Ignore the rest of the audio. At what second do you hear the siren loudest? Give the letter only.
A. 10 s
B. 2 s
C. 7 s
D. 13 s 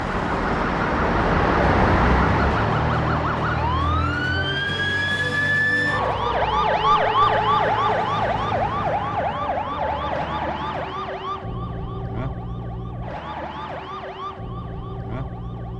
C.